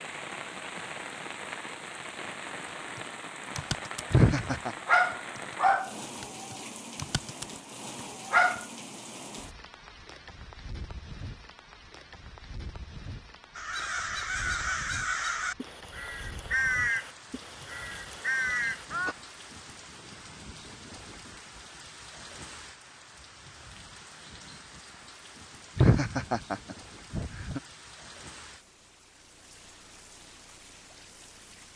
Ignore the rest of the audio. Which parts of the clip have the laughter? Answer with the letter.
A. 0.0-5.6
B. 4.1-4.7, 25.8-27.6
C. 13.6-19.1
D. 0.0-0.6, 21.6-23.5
B.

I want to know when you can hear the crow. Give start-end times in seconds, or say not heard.
13.6-19.1.